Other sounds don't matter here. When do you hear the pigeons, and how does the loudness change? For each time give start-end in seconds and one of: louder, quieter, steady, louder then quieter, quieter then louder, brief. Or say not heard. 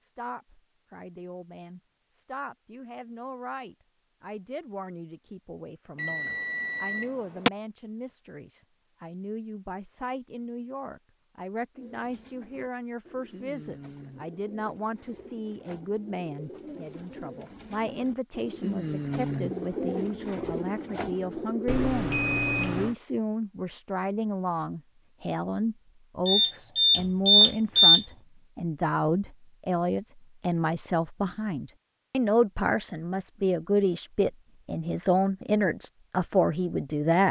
11.8-21.9 louder.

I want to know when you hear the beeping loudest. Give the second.
28 s.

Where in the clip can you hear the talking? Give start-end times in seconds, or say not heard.
0.0-37.2.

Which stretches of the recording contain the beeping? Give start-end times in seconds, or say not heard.
6.0-7.5, 21.6-22.9, 26.2-28.1.